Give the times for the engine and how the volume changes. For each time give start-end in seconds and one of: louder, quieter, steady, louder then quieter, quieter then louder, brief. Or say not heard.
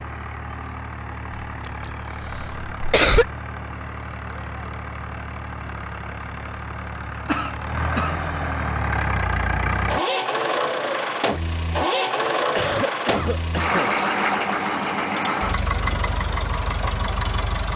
0.0-17.7 louder.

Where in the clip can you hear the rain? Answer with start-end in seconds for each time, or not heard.
not heard.